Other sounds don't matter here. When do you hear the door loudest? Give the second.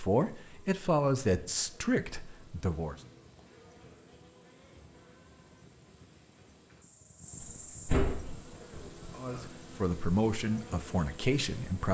8 s.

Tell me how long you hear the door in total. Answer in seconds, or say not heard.
2 s.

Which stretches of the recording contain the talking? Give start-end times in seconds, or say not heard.
0.0-3.0, 9.2-11.8.